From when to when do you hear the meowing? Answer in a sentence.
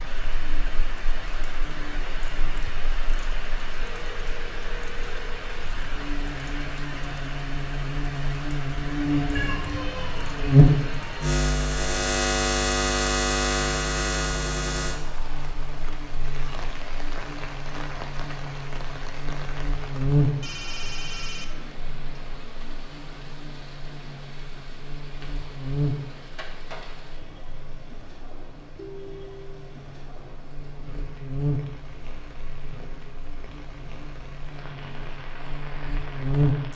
You can hear the meowing from 9.3 to 11.3 s.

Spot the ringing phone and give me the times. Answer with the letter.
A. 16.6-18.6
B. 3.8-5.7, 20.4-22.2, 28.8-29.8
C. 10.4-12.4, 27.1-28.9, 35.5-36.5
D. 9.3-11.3
B.